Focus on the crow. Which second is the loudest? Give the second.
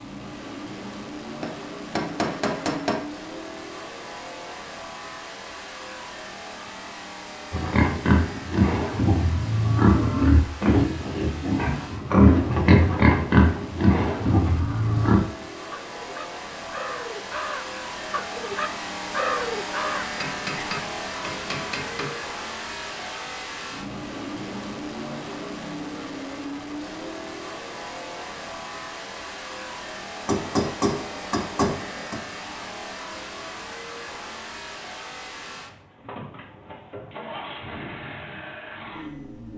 19 s.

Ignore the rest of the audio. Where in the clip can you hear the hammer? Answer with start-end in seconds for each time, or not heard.
1.4-3.0, 20.2-22.1, 30.2-32.2.